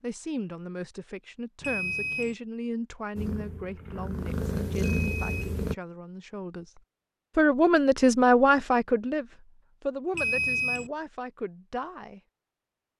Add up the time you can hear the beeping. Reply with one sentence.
The beeping can be heard for 2 seconds in total.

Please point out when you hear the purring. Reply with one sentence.
The purring can be heard from 3.1 to 5.8 s.